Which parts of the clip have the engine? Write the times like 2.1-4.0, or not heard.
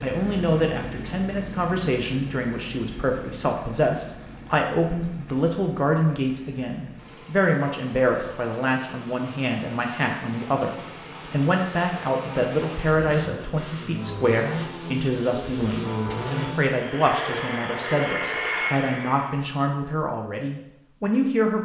0.0-19.4.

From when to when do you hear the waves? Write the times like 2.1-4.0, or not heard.
not heard.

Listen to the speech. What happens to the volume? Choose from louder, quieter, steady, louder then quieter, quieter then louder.
steady.